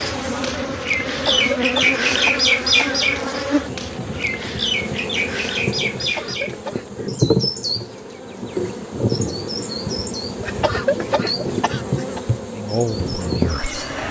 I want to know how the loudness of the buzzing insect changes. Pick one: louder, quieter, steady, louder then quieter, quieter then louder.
steady.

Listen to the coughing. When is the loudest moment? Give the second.
11 s.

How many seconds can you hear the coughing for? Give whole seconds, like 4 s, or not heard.
5 s.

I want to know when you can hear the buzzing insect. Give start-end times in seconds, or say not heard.
0.0-14.0.